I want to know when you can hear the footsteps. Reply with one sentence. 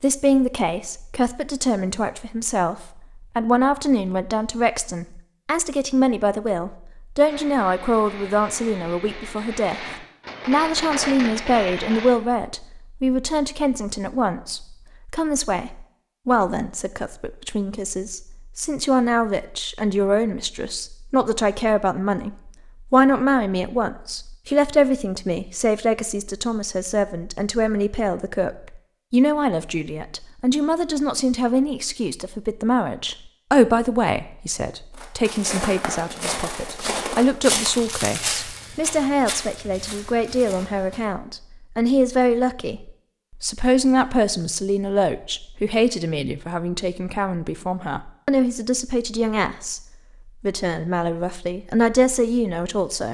You can hear the footsteps from 35.0 to 41.0 s.